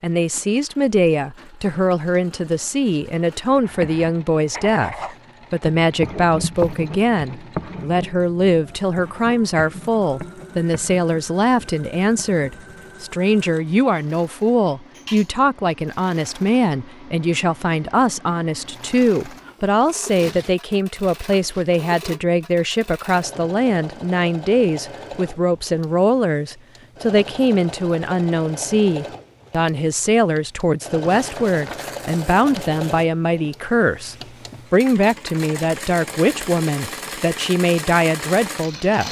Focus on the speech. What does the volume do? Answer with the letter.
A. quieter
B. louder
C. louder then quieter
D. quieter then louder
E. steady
E.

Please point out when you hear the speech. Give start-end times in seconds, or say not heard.
0.0-39.0.